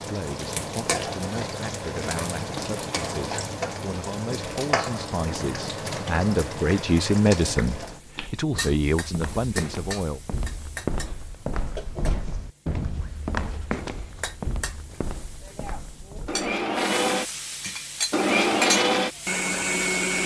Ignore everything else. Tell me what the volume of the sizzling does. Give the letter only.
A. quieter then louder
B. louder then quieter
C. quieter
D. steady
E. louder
A.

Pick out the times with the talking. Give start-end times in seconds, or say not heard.
0.1-10.2.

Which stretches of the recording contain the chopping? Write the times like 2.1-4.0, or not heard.
not heard.